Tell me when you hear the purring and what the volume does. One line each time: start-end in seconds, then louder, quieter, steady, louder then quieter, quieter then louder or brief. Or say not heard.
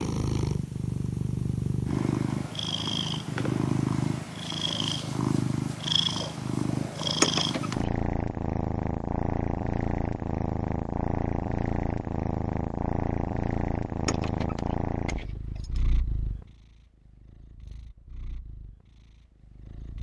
0.0-19.9 quieter.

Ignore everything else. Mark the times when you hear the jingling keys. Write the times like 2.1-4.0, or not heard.
7.2-7.8, 14.1-15.8.